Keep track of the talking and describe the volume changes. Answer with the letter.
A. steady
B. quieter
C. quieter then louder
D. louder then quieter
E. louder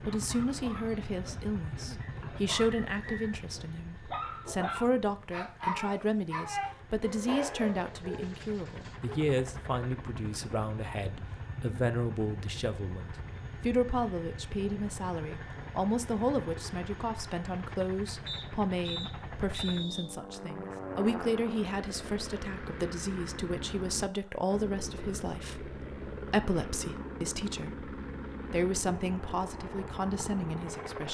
A.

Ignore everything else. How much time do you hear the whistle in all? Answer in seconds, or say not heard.
3 s.